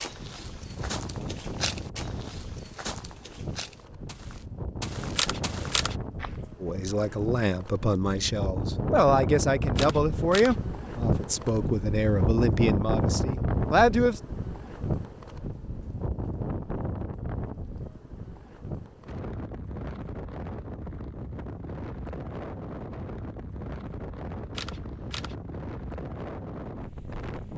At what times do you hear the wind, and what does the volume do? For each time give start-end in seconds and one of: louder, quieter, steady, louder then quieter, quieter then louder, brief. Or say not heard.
0.0-27.5 louder then quieter.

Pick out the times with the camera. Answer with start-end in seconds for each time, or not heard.
5.1-6.0, 9.7-10.6, 24.5-25.4.